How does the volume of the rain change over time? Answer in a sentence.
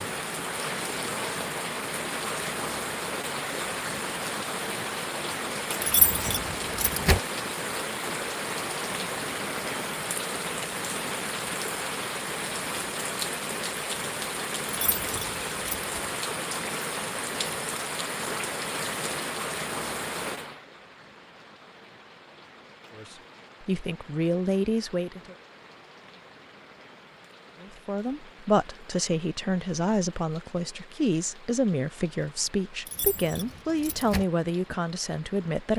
The volume of the rain goes down.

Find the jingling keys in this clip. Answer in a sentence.
You can hear the jingling keys from 5.8 to 7.2 s, from 14.8 to 16.0 s and from 32.9 to 34.2 s.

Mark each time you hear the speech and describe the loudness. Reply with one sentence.
You can hear the speech briefly from 22.9 to 25.4 s; and from 27.6 to 35.7 s, at a steady volume.